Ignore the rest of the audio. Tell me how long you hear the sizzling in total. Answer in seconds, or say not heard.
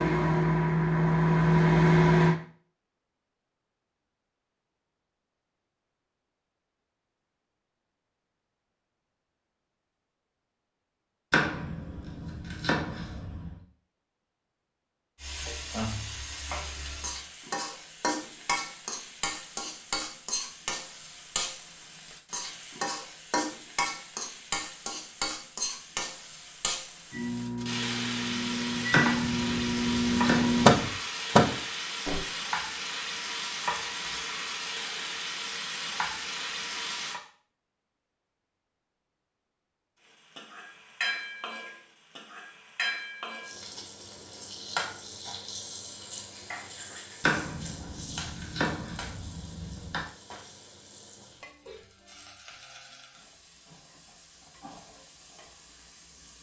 38 s.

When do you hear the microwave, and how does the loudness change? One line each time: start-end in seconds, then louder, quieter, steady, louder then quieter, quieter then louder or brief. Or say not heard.
0.0-2.4 brief
27.1-32.2 louder.